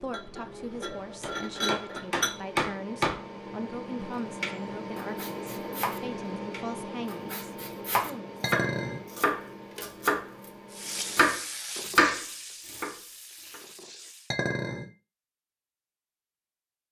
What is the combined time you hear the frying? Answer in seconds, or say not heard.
4 s.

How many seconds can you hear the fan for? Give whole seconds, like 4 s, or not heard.
11 s.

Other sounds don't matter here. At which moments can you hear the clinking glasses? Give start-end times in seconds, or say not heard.
0.1-2.4, 8.4-9.1, 14.3-14.9.